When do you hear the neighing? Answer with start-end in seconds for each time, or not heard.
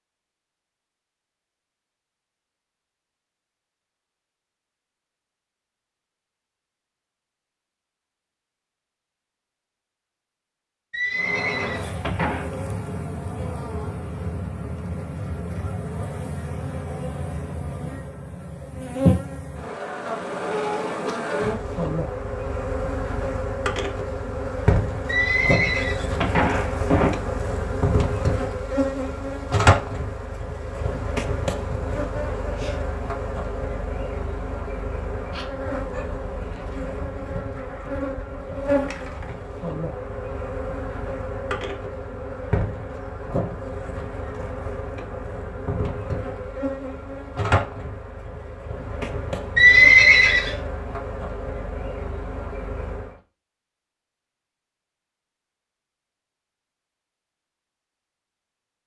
10.9-12.4, 25.1-27.1, 49.5-50.5.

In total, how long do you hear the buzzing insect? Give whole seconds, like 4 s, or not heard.
42 s.